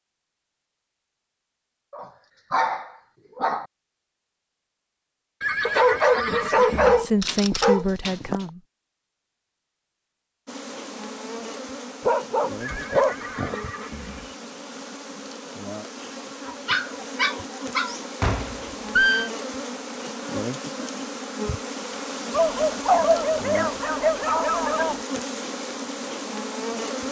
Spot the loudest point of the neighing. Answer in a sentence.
The volume of the neighing peaks at 19 seconds.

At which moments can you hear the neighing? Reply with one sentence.
The neighing can be heard from 5.4 to 7.0 s, from 12.6 to 14.3 s and from 18.2 to 19.3 s.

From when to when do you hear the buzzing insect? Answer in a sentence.
You can hear the buzzing insect from 10.4 to 27.0 s.